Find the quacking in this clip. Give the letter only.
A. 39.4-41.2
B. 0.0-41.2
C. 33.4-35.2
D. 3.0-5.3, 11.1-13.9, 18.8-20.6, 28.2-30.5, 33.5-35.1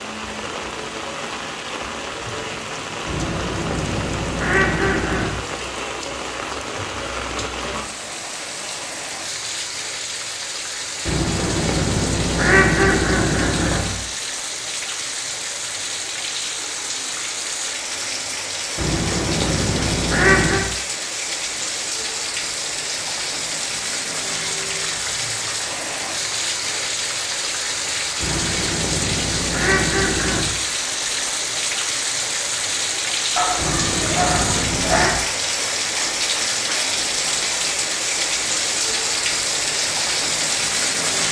D.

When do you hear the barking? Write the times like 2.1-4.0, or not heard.
33.4-35.2.